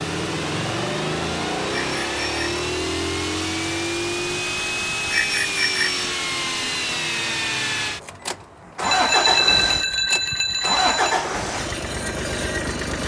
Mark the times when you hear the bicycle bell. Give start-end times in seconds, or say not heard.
1.7-2.6, 5.1-6.0, 8.8-11.2.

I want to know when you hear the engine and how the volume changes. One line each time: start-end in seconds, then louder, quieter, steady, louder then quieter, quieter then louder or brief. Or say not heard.
0.0-13.0 steady.